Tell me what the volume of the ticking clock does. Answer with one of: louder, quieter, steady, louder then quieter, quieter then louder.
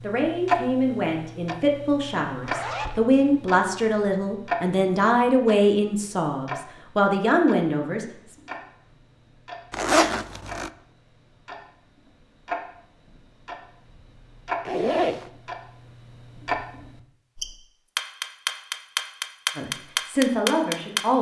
quieter then louder.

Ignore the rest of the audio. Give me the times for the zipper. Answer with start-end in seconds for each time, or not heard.
2.4-3.0, 9.7-10.7, 14.7-15.3.